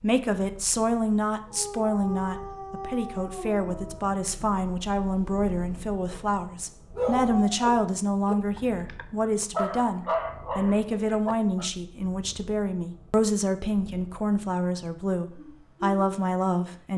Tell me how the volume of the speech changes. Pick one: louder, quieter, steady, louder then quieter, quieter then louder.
steady.